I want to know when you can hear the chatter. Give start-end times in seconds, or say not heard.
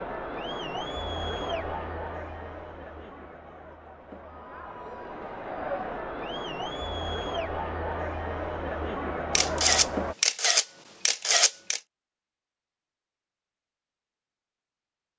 0.0-10.2.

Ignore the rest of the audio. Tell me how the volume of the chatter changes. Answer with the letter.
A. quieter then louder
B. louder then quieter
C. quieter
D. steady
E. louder
A.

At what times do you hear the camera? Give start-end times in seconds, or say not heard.
9.3-11.8.